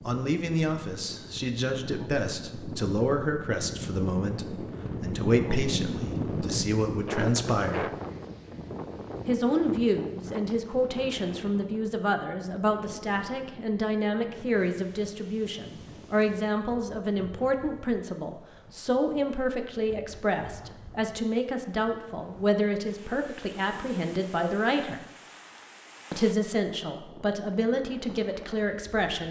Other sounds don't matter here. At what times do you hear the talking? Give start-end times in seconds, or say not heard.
0.0-7.9, 9.2-25.0, 26.1-29.2.